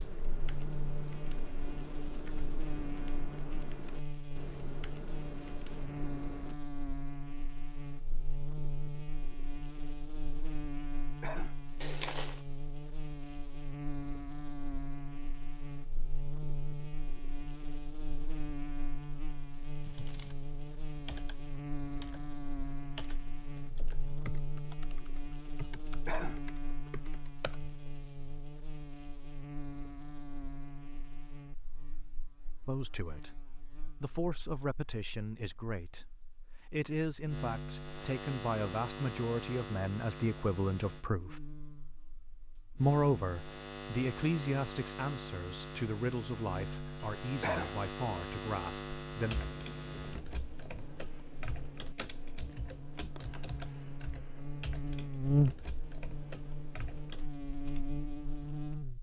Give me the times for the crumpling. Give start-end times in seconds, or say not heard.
11.8-12.4.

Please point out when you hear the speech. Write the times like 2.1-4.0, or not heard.
32.6-33.3, 34.0-41.4, 42.8-49.4.